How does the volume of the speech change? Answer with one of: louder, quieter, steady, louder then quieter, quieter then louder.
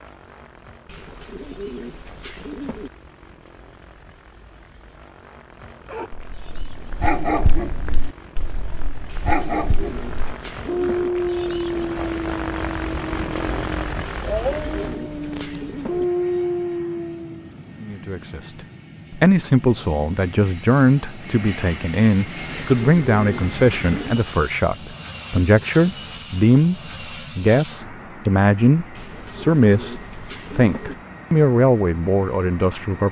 steady.